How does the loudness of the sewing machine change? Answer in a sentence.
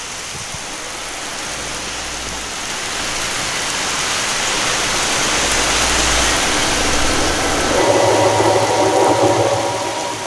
The volume of the sewing machine goes up.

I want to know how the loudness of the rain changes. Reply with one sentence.
The loudness of the rain goes up, then down.